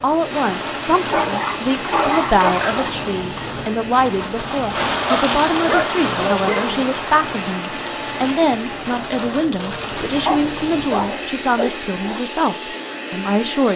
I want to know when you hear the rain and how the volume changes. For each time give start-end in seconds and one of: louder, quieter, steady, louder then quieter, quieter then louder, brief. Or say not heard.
0.0-11.2 louder then quieter.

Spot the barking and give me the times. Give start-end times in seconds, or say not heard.
1.1-2.9, 5.0-6.9, 10.2-12.2.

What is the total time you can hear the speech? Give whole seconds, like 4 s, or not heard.
14 s.